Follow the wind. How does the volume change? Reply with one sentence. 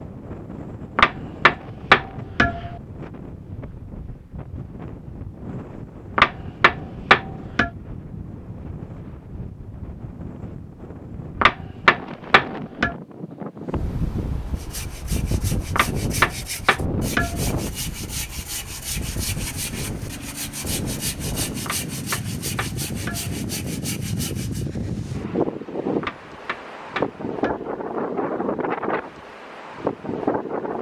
The loudness of the wind goes up.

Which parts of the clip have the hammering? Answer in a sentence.
The hammering can be heard from 0.9 to 2.8 s, from 6.2 to 7.7 s, from 11.4 to 12.9 s, from 15.8 to 17.6 s, from 21.6 to 23.3 s and from 26.0 to 27.7 s.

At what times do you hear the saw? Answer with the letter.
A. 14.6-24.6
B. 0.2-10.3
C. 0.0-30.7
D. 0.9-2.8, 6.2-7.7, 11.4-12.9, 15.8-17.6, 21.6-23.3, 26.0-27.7
A.